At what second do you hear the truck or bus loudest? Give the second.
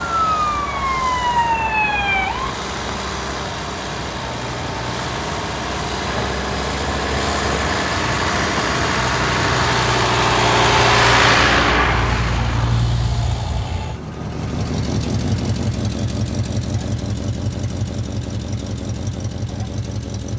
11 s.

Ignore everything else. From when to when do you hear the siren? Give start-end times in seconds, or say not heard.
0.0-2.5.